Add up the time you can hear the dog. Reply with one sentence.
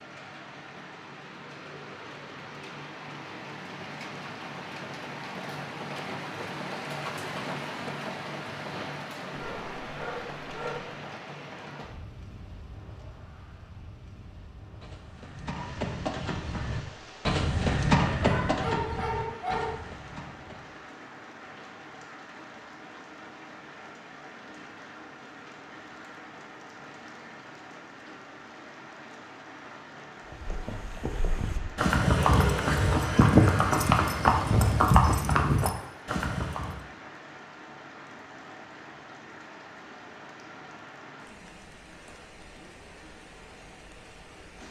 The dog can be heard for 4 seconds in total.